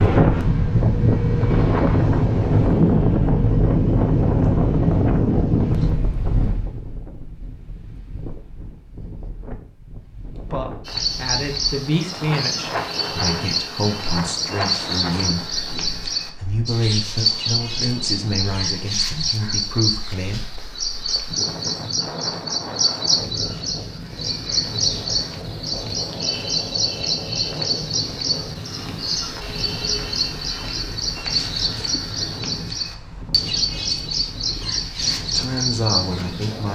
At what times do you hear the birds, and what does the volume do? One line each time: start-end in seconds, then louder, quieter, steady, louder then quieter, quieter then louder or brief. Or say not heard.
10.8-36.7 steady.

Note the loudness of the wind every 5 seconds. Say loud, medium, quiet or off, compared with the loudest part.
loud, medium, quiet, quiet, quiet, quiet, quiet, quiet.